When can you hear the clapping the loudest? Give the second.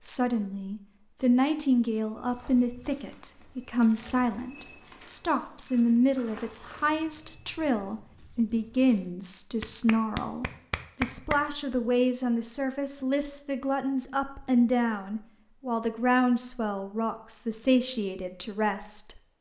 11 s.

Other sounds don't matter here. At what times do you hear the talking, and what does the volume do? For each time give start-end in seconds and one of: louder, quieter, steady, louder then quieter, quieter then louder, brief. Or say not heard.
0.0-19.2 steady.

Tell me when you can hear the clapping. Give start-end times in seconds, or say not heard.
9.6-11.4.